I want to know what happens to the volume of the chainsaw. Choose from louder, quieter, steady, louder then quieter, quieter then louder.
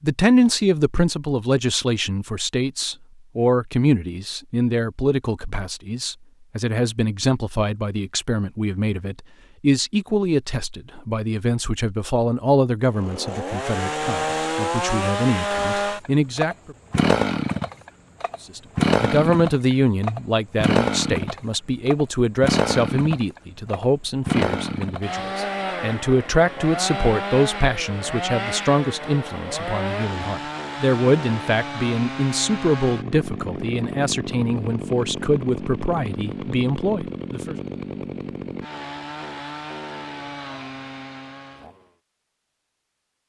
quieter.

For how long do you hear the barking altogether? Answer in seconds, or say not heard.
not heard.